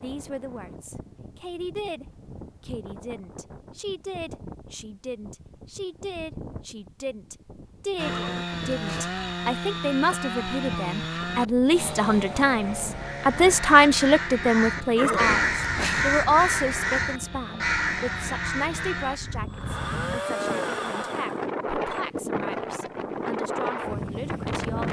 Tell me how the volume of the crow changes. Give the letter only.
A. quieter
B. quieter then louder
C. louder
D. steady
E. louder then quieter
E.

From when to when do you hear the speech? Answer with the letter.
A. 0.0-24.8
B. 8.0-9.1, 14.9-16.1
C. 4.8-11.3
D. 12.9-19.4
A.